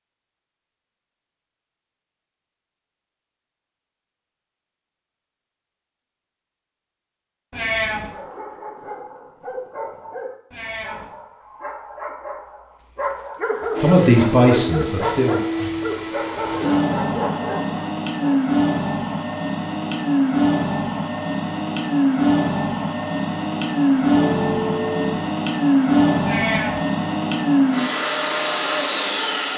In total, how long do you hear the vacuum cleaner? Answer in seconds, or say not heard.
16 s.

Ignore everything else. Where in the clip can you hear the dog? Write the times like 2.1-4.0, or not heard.
8.0-18.4.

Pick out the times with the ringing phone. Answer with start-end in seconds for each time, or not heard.
24.2-25.2.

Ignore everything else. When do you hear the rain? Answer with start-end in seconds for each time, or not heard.
not heard.